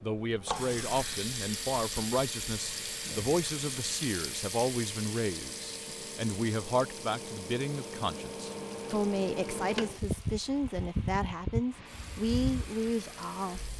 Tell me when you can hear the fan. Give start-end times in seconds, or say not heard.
0.0-13.7.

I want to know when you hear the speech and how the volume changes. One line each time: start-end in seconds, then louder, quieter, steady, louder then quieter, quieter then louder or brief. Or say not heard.
0.0-13.7 steady.